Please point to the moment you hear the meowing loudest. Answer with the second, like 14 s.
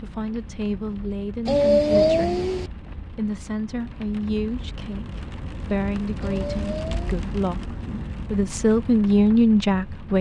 2 s.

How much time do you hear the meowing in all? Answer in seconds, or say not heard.
2 s.